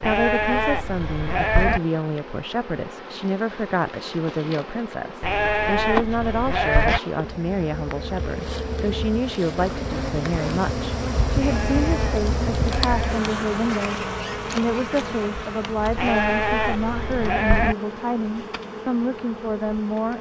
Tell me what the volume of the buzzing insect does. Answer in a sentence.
The loudness of the buzzing insect goes up, then down.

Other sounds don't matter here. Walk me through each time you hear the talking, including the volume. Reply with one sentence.
The talking can be heard from 0.0 to 20.1 s, at a steady volume.